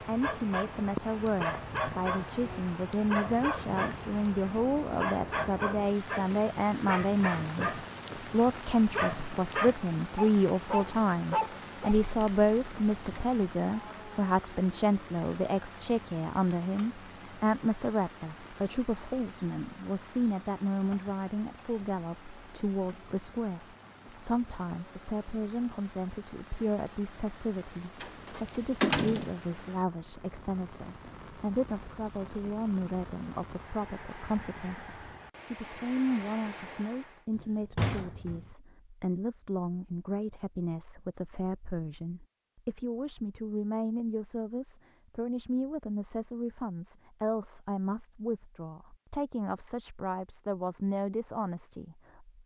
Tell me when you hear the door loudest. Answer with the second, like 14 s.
29 s.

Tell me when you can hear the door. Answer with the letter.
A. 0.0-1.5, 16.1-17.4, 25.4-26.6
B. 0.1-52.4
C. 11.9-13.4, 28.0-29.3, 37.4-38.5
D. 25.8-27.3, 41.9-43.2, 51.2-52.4
C.